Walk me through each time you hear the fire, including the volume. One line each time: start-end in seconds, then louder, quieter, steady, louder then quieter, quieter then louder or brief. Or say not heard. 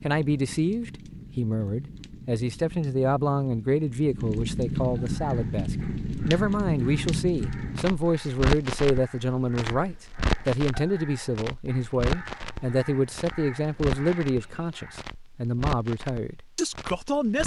0.0-17.4 louder then quieter.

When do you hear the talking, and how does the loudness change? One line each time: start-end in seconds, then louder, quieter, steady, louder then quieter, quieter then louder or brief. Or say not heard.
0.0-17.4 steady.